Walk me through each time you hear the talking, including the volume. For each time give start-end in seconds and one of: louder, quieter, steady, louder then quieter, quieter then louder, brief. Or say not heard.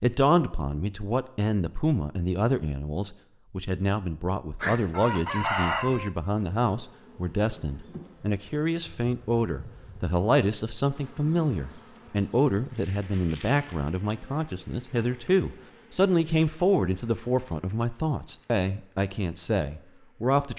0.0-20.5 steady.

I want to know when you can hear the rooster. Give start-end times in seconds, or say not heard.
4.6-6.1.